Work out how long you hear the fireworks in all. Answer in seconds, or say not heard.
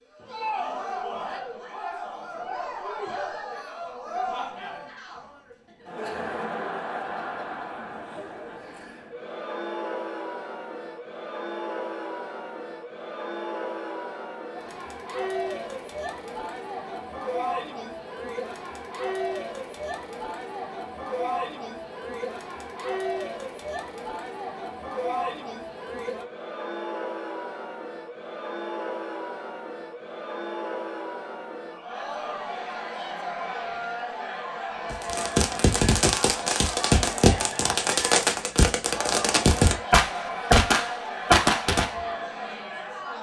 7 s.